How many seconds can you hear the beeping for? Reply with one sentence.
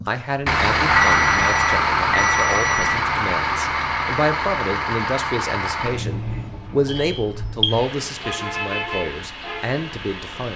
The beeping can be heard for 3 seconds in total.